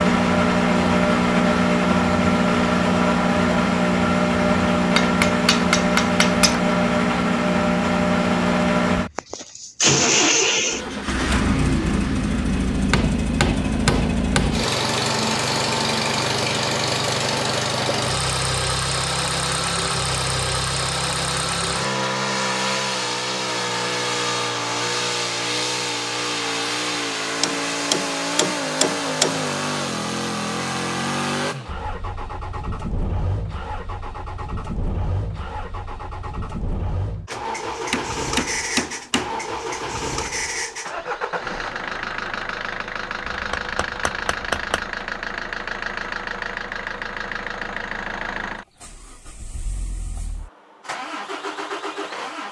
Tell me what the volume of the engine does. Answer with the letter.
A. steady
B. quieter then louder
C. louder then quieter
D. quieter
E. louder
D.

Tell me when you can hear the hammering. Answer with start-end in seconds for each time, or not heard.
5.0-6.6, 12.9-14.7, 27.4-29.4, 37.9-39.4, 43.3-44.9.